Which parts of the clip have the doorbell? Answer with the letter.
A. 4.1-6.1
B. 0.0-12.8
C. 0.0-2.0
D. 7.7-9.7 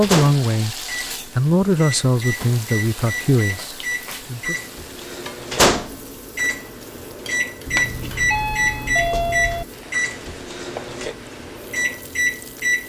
D.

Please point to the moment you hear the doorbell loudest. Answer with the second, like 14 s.
9 s.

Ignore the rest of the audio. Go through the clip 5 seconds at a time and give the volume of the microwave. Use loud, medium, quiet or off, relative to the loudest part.
medium, loud, loud.